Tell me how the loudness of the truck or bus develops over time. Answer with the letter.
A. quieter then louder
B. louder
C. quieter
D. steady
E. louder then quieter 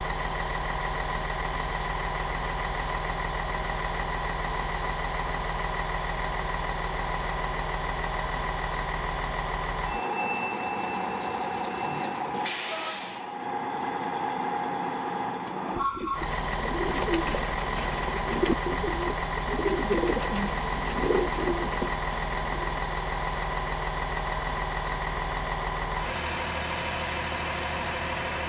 D.